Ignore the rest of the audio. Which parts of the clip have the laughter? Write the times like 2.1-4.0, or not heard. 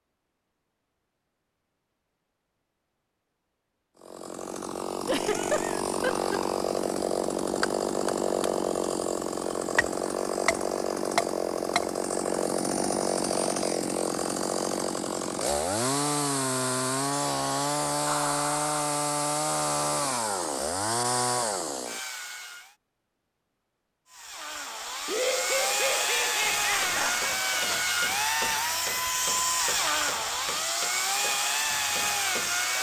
5.0-6.4, 18.1-18.9, 25.1-27.4.